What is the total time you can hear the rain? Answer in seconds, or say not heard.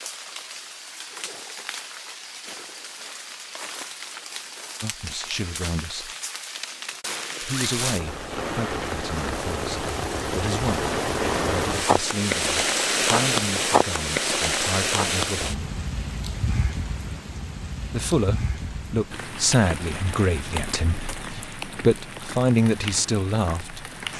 24 s.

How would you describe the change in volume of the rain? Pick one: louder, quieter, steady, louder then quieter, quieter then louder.
louder then quieter.